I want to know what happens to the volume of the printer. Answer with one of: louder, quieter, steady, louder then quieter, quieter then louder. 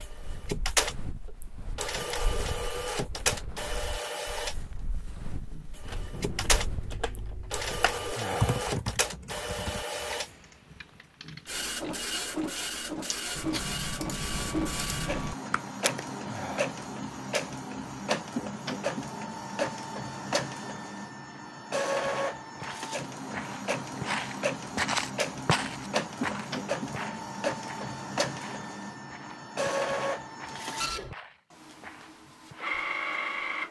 steady.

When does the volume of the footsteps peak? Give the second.
25 s.